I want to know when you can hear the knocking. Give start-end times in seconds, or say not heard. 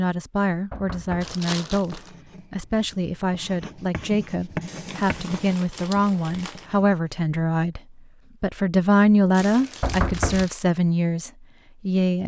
0.7-1.4, 9.8-10.5.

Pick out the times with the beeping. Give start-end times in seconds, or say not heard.
not heard.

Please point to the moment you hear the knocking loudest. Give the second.
10 s.